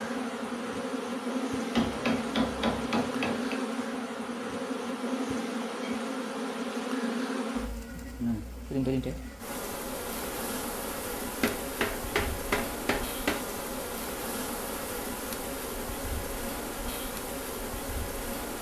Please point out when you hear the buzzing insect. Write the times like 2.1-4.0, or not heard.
0.0-18.5.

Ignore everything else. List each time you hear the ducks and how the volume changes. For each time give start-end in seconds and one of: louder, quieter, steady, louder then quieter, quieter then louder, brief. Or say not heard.
not heard.